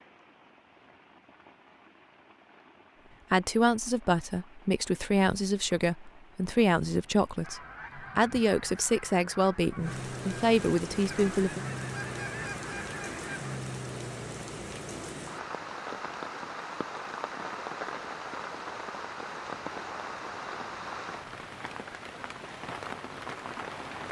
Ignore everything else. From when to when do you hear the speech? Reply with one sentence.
The speech can be heard from 3.3 to 11.6 s.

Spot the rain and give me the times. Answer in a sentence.
The rain can be heard from 0.0 to 24.0 s.